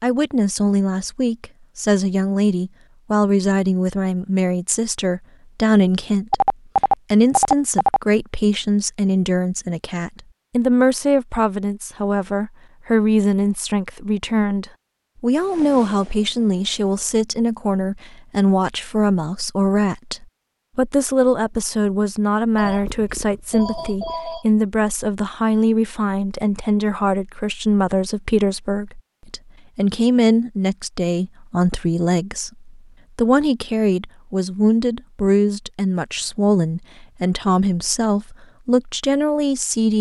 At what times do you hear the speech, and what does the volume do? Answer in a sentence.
You can hear the speech from 0.0 to 39.9 s, at a steady volume.